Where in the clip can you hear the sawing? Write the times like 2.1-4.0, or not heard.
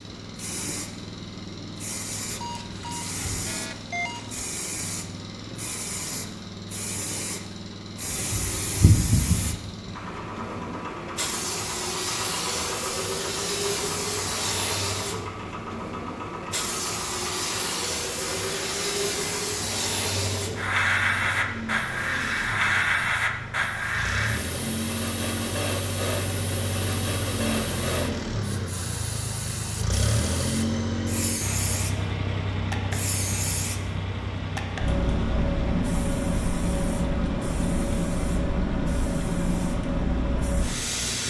not heard.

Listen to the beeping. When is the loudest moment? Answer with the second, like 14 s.
4 s.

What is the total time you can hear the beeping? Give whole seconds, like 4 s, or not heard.
2 s.